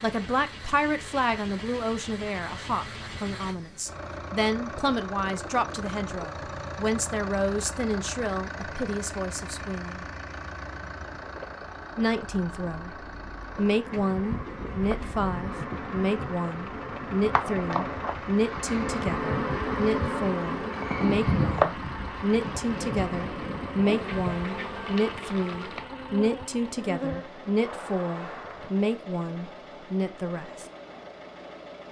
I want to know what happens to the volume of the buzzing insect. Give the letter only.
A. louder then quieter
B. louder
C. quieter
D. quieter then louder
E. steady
A.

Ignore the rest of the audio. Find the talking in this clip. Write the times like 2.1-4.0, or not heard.
0.0-10.1, 11.9-12.9, 13.6-30.6.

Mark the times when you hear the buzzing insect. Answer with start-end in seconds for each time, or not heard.
13.3-28.9.